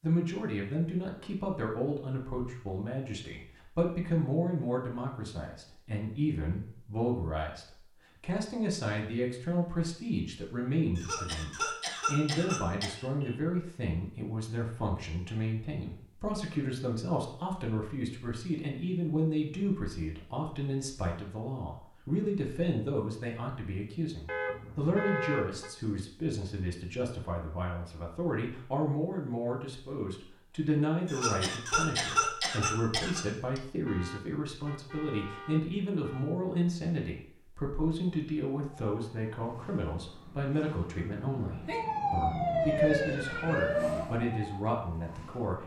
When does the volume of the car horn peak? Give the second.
25 s.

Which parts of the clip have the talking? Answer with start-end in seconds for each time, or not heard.
0.0-45.6.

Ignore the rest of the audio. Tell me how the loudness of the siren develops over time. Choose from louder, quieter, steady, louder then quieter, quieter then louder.
louder then quieter.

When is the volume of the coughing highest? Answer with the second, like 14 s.
32 s.